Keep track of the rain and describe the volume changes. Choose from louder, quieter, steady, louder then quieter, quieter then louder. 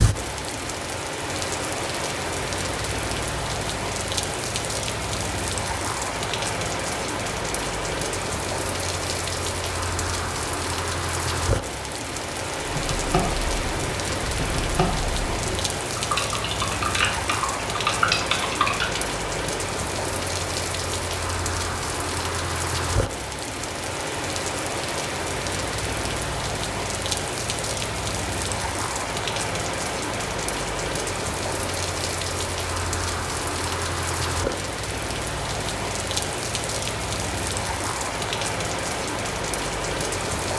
steady.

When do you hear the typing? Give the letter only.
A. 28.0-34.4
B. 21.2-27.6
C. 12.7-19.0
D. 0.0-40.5
C.